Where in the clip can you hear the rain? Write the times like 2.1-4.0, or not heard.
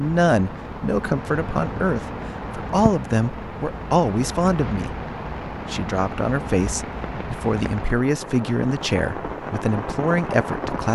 0.0-10.9.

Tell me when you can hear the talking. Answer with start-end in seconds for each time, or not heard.
0.0-5.0, 5.7-10.9.